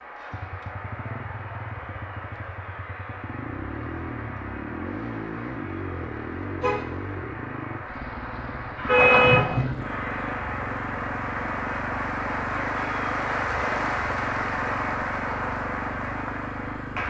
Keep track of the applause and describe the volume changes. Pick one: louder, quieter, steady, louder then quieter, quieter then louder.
louder.